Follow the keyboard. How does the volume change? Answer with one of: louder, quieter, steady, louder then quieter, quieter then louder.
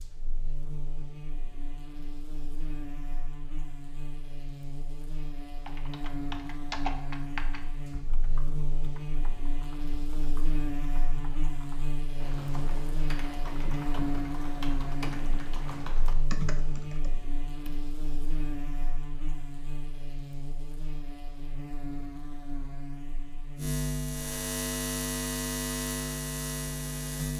quieter then louder.